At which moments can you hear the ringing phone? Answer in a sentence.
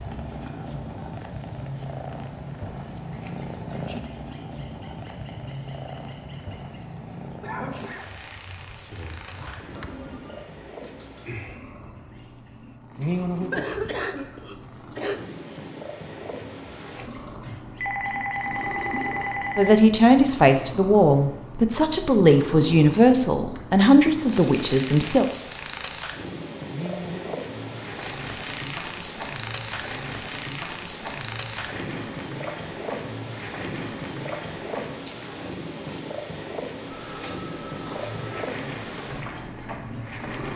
The ringing phone can be heard from 9.2 to 10.4 s, from 17.8 to 19.8 s and from 36.9 to 38.5 s.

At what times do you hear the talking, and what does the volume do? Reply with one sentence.
You can hear the talking from 19.6 to 25.2 s, at a steady volume.